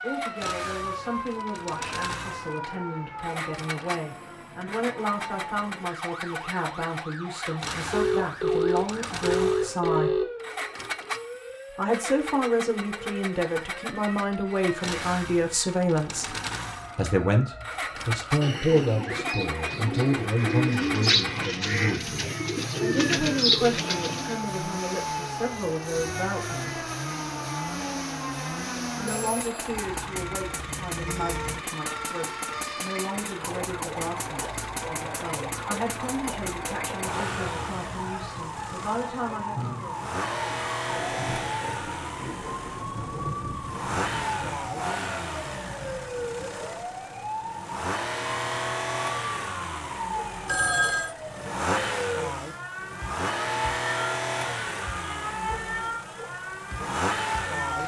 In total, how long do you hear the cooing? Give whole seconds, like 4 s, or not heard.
6 s.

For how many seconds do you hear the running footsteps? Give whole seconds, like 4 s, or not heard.
not heard.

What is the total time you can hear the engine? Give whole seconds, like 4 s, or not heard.
58 s.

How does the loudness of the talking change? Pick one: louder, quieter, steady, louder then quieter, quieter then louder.
louder then quieter.